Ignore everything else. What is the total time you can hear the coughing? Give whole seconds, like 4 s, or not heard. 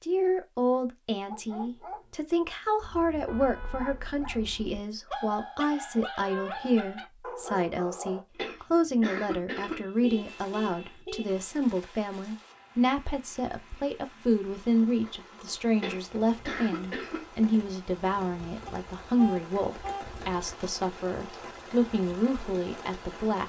3 s.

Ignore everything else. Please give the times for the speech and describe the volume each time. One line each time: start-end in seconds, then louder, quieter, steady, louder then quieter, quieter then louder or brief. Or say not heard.
0.0-23.4 steady.